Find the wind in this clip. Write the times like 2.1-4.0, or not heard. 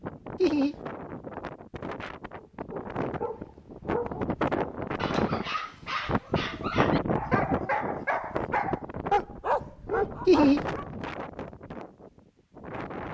0.0-13.1.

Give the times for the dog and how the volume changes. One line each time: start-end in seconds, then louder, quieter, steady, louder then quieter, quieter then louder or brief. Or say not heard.
2.4-10.9 louder.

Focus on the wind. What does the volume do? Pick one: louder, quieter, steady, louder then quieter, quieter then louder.
louder then quieter.